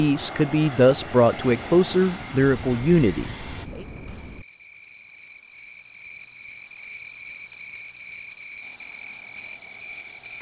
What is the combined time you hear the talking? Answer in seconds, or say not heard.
4 s.